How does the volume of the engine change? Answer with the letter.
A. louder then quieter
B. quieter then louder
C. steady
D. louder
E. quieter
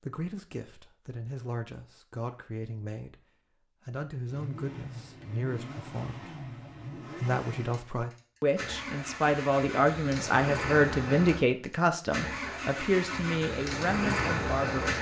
D.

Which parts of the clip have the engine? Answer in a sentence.
You can hear the engine from 4.2 to 14.9 s.